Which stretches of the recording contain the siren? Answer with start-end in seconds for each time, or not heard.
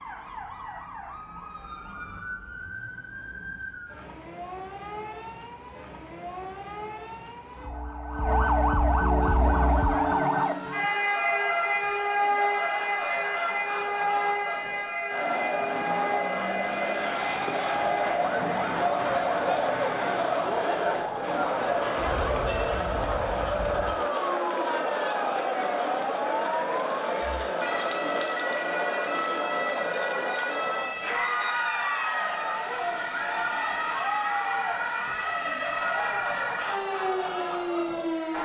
0.0-38.3.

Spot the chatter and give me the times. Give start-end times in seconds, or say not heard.
9.2-38.3.